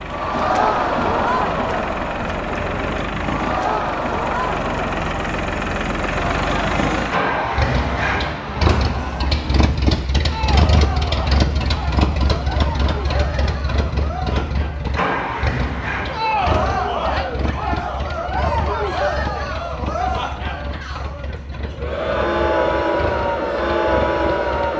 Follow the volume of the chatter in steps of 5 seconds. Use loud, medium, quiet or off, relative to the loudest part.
loud, medium, medium, loud, loud.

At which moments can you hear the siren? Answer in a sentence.
You can't hear the siren here.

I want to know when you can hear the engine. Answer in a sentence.
You can hear the engine from 0.0 to 24.7 s.